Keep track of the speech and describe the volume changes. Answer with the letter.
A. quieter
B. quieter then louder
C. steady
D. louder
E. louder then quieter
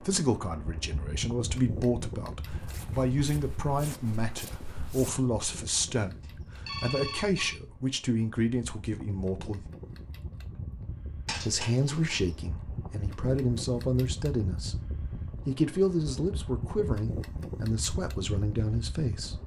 C.